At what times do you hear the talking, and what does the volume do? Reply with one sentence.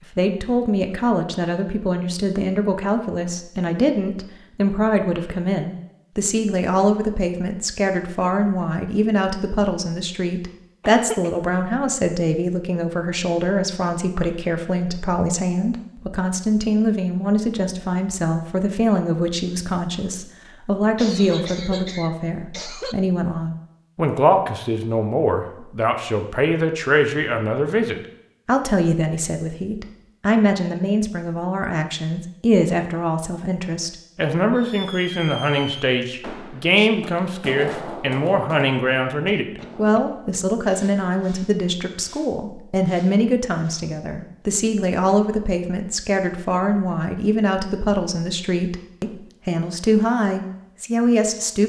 You can hear the talking from 0.1 to 51.6 s, at a steady volume.